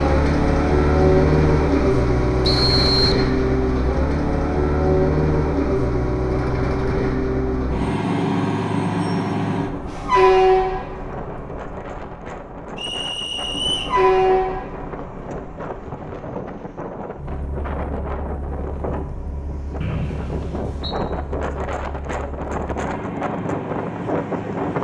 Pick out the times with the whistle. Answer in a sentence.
You can hear the whistle from 2.5 to 3.1 s, from 12.8 to 13.9 s and from 19.8 to 20.9 s.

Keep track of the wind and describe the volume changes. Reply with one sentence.
The loudness of the wind goes up.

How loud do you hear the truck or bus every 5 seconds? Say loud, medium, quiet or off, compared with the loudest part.
loud, loud, loud, quiet, quiet.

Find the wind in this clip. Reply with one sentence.
The wind can be heard from 10.9 to 24.7 s.